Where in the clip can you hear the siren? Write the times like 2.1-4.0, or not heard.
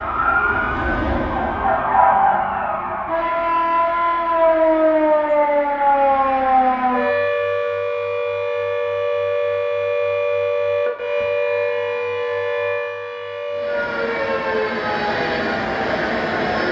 0.0-16.6.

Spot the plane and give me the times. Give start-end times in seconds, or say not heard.
0.0-2.1, 13.5-16.6.